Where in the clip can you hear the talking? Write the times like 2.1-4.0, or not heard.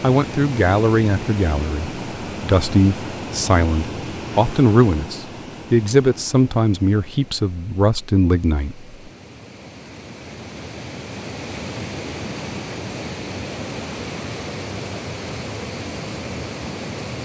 0.0-8.8.